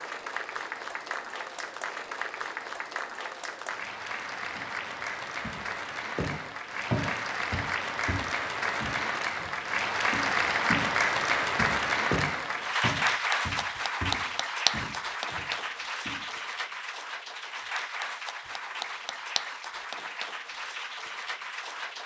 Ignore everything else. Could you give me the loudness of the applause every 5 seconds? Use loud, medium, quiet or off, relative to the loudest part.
medium, medium, loud, medium, medium.